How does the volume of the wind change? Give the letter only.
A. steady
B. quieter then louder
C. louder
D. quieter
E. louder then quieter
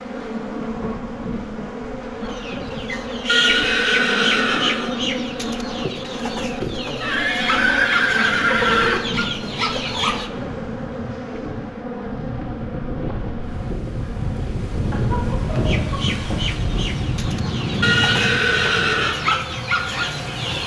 C.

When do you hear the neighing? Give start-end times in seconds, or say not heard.
3.2-5.0, 7.0-9.0, 17.8-19.1.